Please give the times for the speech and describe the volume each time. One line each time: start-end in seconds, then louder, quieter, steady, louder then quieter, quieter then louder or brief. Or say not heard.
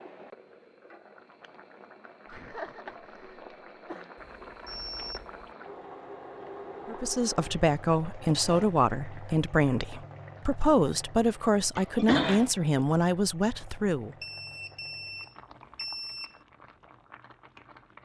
6.8-14.2 steady.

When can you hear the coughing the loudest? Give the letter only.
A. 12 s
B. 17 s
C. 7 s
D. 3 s
A.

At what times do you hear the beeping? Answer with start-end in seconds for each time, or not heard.
4.2-5.5, 14.2-16.4.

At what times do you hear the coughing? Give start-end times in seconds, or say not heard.
2.2-4.1, 11.8-12.5.